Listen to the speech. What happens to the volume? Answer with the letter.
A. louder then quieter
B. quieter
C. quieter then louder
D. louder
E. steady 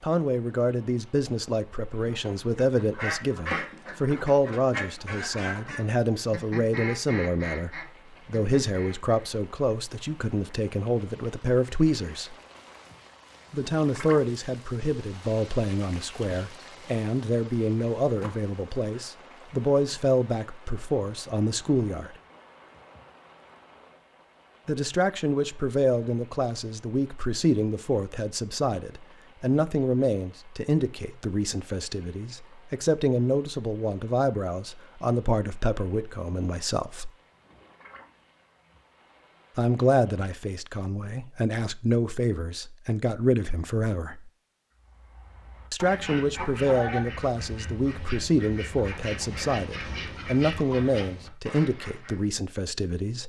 E.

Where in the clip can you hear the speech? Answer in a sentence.
You can hear the speech from 0.0 to 12.3 s, from 13.5 to 22.1 s, from 24.6 to 37.1 s, from 39.5 to 44.3 s and from 45.7 to 53.2 s.